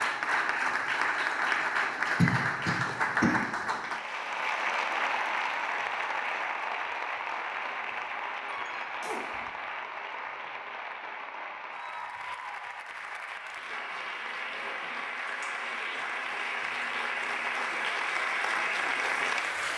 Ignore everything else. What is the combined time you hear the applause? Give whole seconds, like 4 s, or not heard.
20 s.